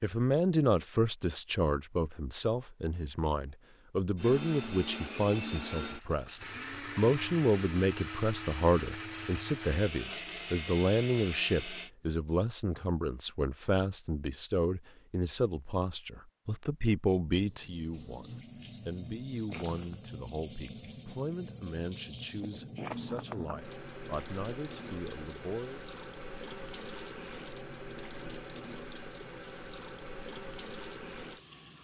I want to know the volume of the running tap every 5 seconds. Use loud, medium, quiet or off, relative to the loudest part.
off, off, off, loud, loud, loud, loud.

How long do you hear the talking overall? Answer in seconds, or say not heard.
26 s.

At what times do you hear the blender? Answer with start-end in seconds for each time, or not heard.
4.2-11.9.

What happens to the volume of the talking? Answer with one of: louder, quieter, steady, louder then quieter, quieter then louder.
quieter.